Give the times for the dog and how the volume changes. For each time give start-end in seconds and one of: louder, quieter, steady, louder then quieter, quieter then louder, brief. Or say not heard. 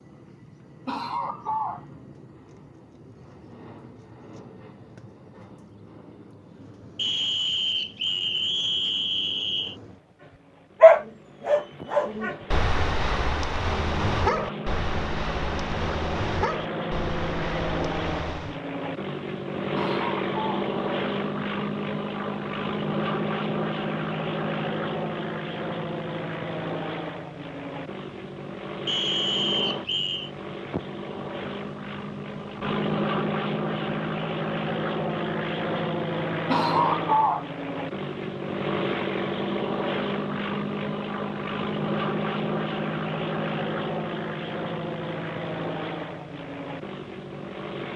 10.8-18.6 quieter.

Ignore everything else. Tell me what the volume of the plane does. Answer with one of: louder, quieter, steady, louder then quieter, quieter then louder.
louder.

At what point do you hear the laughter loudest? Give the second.
37 s.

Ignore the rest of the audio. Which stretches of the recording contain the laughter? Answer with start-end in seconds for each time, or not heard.
0.8-1.9, 19.8-20.8, 36.5-37.5.